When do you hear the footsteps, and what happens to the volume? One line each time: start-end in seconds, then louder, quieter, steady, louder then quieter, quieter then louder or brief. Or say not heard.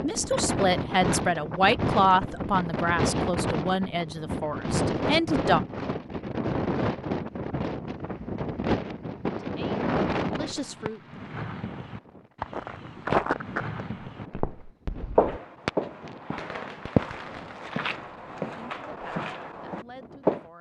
12.5-20.4 quieter.